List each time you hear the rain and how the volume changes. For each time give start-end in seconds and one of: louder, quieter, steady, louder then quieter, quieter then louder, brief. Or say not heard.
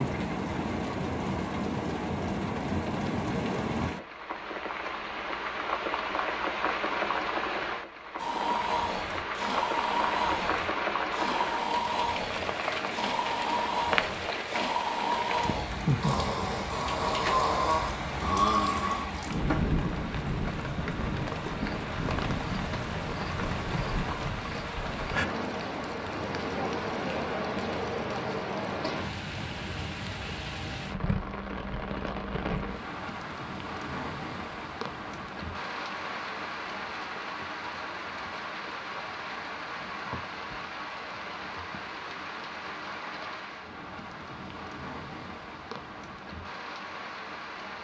0.0-47.7 quieter.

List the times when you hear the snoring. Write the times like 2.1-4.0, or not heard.
8.2-19.8.